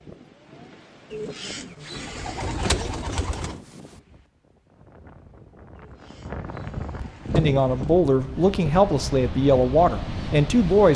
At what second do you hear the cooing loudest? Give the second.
3 s.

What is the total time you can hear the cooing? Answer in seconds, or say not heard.
5 s.